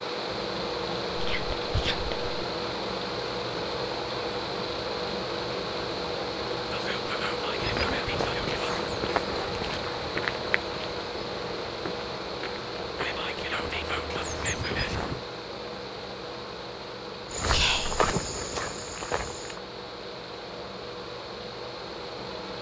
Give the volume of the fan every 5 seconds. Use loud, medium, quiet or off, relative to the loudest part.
loud, loud, loud, medium, medium.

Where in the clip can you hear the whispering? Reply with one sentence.
The whispering can be heard from 1.1 to 2.2 s, from 6.7 to 8.7 s, from 12.9 to 14.9 s and from 17.5 to 18.1 s.